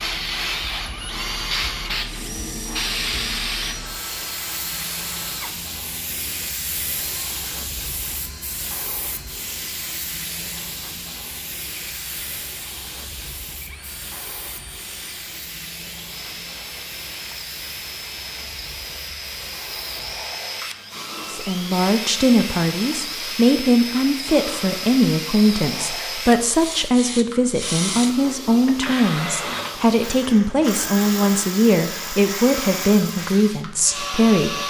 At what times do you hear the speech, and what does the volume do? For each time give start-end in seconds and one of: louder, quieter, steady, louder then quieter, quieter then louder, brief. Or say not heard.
21.2-34.6 steady.